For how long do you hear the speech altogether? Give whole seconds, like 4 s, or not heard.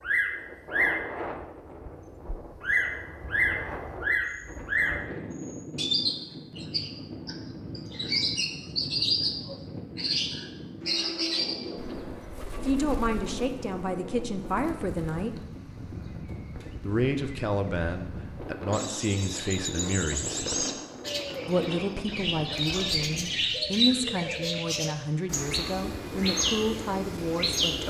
13 s.